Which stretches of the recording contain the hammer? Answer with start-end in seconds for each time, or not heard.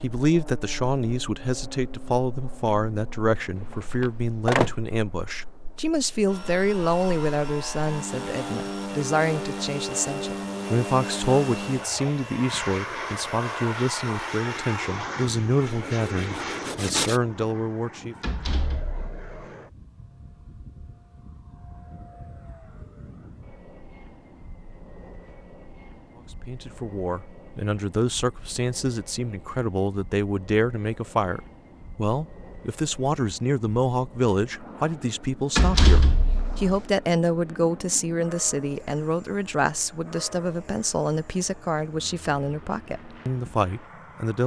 not heard.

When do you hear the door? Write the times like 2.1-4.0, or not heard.
3.7-4.7, 18.2-19.2, 35.5-36.8.